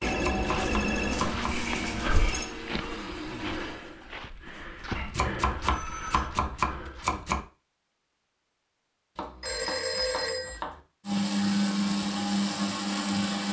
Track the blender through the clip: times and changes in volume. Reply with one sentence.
The blender can be heard from 0.1 to 4.8 s, getting quieter; and briefly from 11.0 to 13.4 s.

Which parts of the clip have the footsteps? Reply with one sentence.
The footsteps can be heard from 0.3 to 7.2 s.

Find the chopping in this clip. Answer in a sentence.
You can hear the chopping from 0.1 to 1.6 s, from 5.0 to 7.5 s and from 9.2 to 10.8 s.